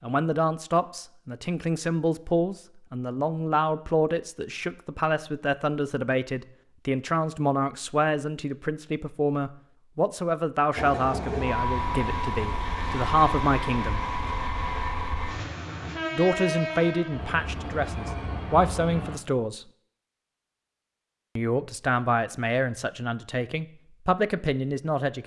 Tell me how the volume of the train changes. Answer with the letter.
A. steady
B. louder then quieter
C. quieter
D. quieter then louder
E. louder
C.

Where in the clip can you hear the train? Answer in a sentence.
You can hear the train from 10.8 to 19.2 s.